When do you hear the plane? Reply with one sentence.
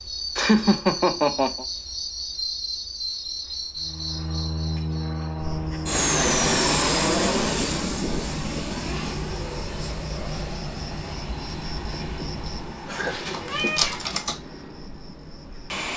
You can hear the plane from 3.8 to 15.9 s.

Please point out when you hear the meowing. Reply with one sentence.
The meowing can be heard from 12.9 to 14.3 s.